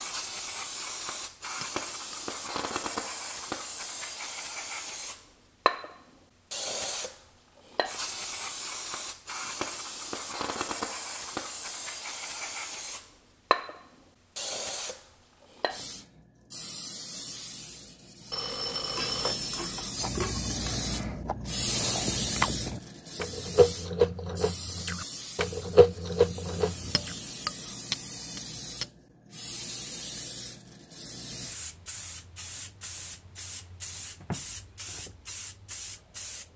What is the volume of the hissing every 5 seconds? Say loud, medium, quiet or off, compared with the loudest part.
loud, loud, loud, medium, loud, medium, medium, medium.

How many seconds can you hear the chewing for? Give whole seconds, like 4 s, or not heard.
7 s.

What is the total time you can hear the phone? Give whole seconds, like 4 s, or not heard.
2 s.